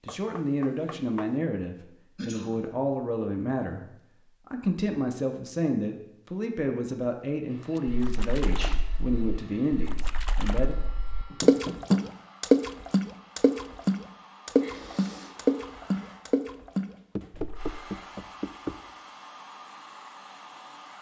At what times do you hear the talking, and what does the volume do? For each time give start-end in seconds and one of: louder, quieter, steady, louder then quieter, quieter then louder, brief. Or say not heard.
0.0-10.8 steady.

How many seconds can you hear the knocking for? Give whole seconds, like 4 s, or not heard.
4 s.